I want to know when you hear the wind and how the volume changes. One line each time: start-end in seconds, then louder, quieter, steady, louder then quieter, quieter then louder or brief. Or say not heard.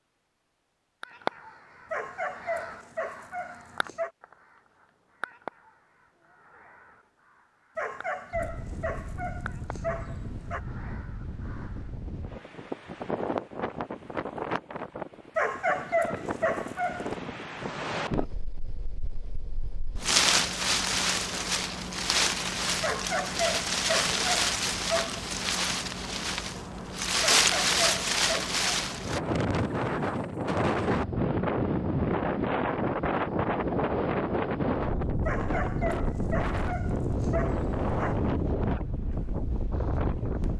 8.3-40.5 louder.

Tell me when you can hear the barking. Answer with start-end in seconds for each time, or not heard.
1.9-4.1, 7.8-10.6, 15.3-17.1, 22.8-25.3, 27.3-28.6, 35.2-38.1.